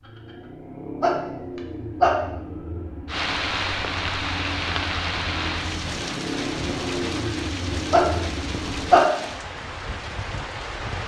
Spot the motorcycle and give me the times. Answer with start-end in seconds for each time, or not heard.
0.0-9.0.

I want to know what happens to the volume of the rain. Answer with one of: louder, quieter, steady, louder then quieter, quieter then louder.
quieter.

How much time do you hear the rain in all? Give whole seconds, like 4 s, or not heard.
8 s.